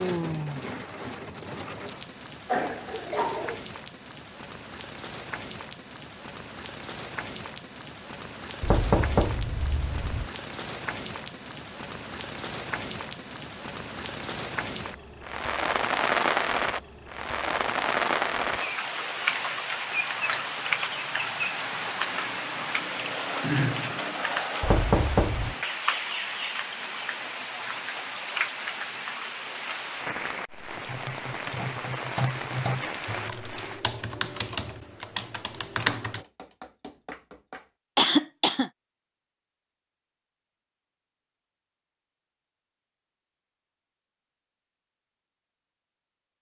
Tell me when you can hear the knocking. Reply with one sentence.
You can hear the knocking from 8.6 to 10.3 s, from 24.6 to 25.6 s and from 36.0 to 37.7 s.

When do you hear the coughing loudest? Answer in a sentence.
The loudest moment of the coughing is at 38 seconds.